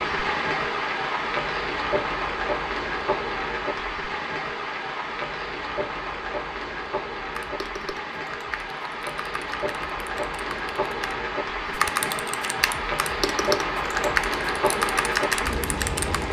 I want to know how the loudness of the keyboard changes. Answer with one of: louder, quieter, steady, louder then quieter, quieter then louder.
louder.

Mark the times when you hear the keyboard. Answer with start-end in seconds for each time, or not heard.
7.2-16.2.